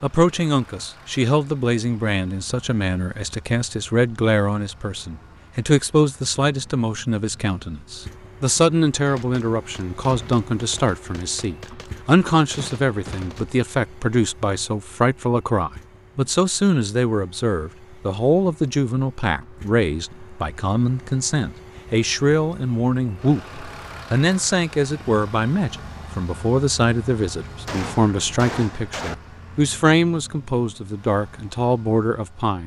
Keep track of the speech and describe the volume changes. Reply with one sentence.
The loudness of the speech stays about the same.